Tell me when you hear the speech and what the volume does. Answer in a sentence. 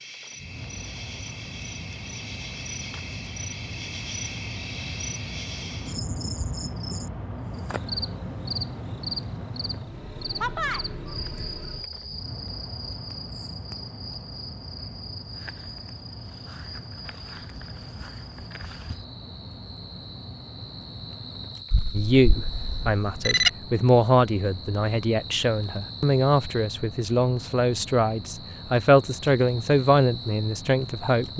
You can hear the speech from 21.9 to 31.3 s, at a steady volume.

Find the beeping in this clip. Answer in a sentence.
You can hear the beeping from 21.7 to 23.5 s.